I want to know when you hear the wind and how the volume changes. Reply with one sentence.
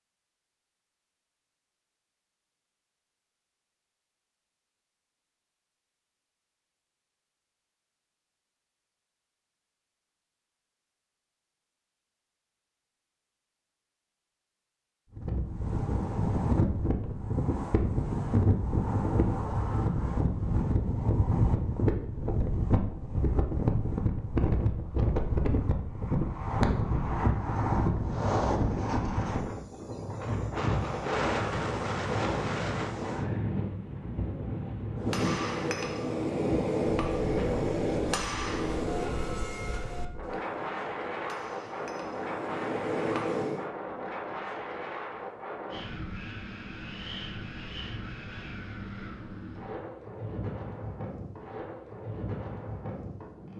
The wind can be heard from 15.2 to 53.5 s, getting quieter.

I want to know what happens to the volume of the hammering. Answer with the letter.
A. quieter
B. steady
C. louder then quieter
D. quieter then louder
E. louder
D.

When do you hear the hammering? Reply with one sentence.
You can hear the hammering from 35.0 to 43.7 s.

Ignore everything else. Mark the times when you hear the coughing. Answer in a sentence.
The coughing can't be heard in this clip.